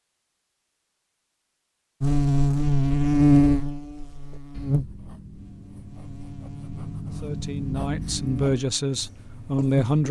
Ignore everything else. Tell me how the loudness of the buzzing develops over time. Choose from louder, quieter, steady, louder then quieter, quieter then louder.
quieter then louder.